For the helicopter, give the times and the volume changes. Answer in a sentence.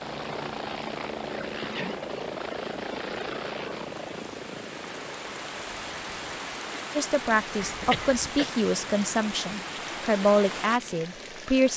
The helicopter can be heard from 0.0 to 11.7 s, getting quieter.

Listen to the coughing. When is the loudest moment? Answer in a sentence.
The loudest moment of the coughing is at 8 seconds.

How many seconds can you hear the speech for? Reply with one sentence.
You can hear the speech for 5 seconds altogether.